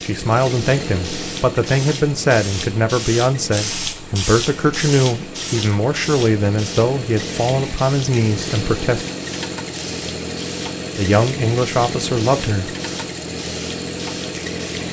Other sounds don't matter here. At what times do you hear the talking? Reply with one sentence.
You can hear the talking from 0.0 to 9.1 s and from 10.9 to 12.8 s.